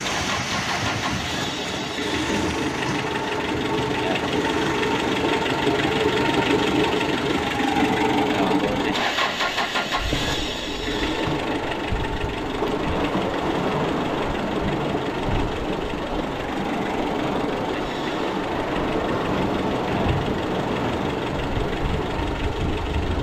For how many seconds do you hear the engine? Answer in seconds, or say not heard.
23 s.